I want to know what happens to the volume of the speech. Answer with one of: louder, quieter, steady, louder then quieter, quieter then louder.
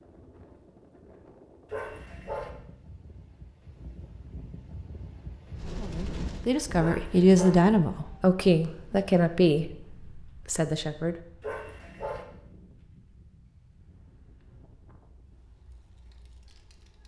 louder then quieter.